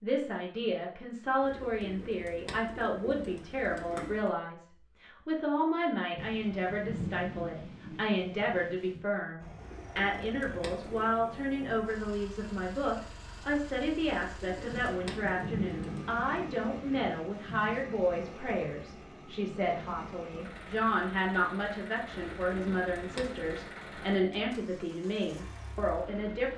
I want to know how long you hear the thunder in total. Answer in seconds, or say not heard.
6 s.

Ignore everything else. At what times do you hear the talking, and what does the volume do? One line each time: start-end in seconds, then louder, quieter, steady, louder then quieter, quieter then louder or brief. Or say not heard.
0.0-26.5 steady.